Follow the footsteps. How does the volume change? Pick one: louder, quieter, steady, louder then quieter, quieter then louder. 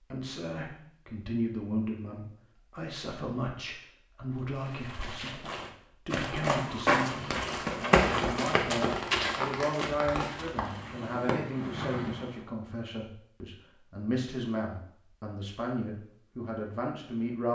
louder then quieter.